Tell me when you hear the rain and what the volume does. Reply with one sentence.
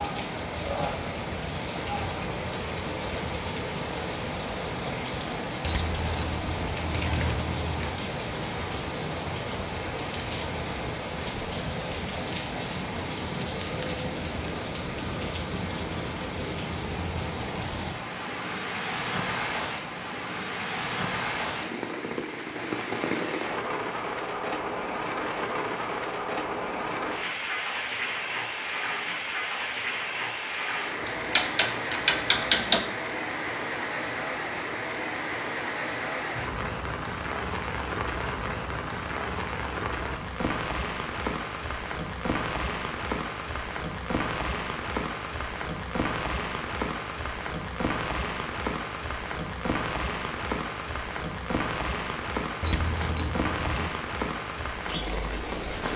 You can hear the rain from 0.0 to 55.9 s, at a steady volume.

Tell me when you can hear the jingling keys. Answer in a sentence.
You can hear the jingling keys from 5.7 to 8.0 s, from 31.1 to 32.9 s and from 52.6 to 53.9 s.